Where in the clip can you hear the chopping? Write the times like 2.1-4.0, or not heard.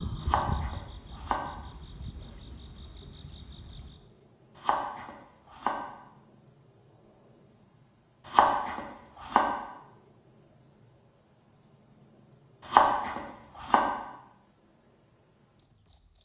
0.2-1.4, 4.6-5.8, 8.3-9.4, 12.7-13.8.